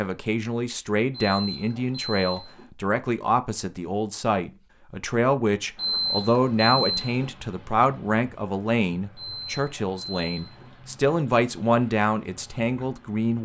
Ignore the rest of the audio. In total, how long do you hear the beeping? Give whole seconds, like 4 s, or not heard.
5 s.